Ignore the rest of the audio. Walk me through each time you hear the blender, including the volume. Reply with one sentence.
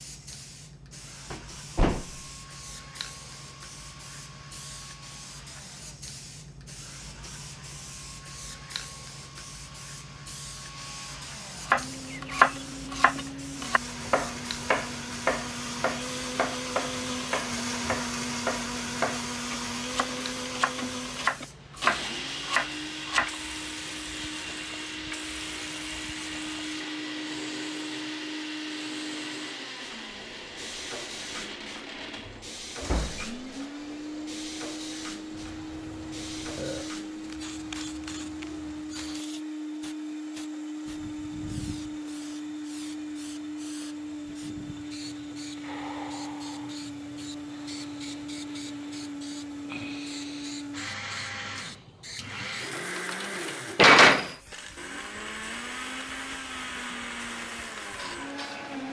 You can hear the blender from 0.0 to 58.8 s, getting louder.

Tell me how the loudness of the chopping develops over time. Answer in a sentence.
The loudness of the chopping goes down, then up.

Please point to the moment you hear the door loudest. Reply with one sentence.
The volume of the door peaks at 54 seconds.